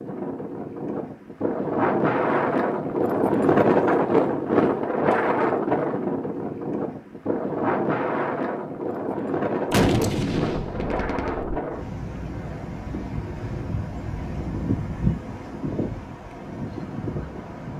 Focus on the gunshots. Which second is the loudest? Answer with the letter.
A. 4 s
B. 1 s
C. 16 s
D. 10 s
D.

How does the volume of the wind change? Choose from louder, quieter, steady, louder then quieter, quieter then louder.
quieter.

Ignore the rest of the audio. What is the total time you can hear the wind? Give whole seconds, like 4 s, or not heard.
18 s.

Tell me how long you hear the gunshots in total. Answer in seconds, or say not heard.
2 s.